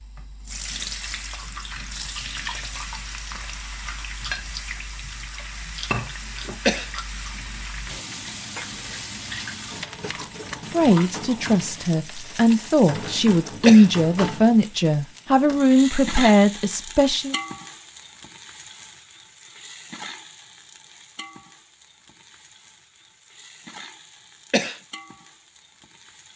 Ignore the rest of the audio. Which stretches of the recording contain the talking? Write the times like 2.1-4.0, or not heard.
10.7-17.4.